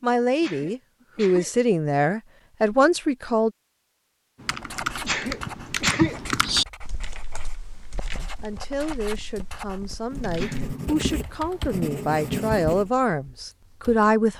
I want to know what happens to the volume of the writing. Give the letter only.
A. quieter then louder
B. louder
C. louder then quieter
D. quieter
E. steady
A.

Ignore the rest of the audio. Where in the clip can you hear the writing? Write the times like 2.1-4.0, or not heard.
4.5-12.9.